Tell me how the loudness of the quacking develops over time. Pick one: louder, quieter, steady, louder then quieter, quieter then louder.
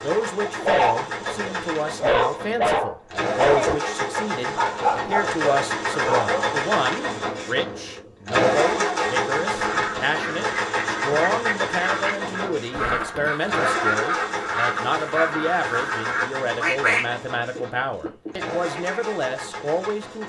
louder.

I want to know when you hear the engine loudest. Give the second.
9 s.